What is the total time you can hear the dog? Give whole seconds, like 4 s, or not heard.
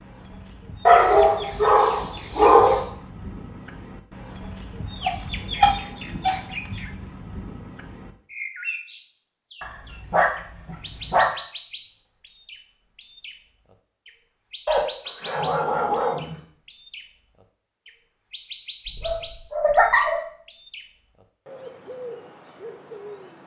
8 s.